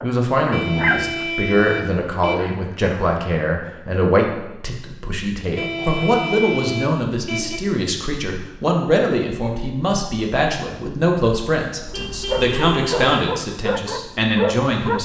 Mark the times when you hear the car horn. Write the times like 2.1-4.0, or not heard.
0.5-2.5, 5.5-7.6, 11.8-13.1.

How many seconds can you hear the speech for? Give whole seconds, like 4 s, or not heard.
15 s.